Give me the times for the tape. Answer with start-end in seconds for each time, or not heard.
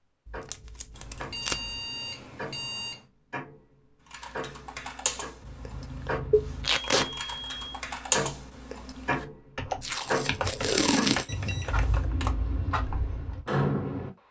0.2-1.8, 6.6-7.1, 9.8-11.5.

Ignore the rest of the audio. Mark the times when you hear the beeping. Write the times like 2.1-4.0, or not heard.
0.9-3.0, 5.4-7.8, 11.2-12.1.